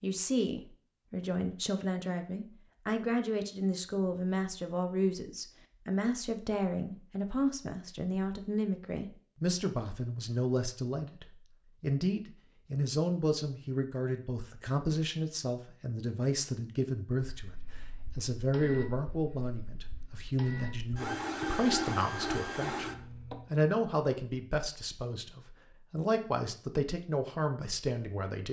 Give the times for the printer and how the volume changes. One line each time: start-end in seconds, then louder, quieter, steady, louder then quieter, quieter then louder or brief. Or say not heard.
17.4-23.4 quieter then louder.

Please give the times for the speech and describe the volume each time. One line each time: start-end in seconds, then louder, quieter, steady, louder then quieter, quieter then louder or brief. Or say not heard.
0.0-28.4 steady.